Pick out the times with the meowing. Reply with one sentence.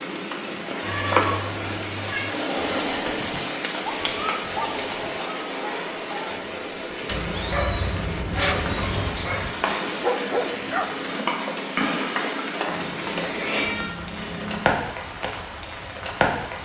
You can hear the meowing from 0.8 to 2.3 s, from 7.1 to 9.1 s and from 12.7 to 14.6 s.